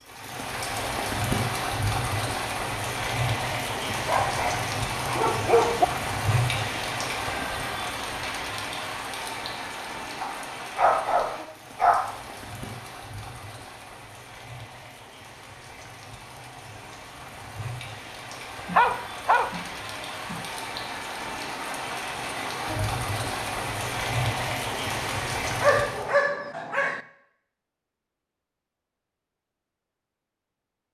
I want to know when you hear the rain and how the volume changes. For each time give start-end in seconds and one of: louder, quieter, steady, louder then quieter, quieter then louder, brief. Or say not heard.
0.0-26.1 quieter then louder.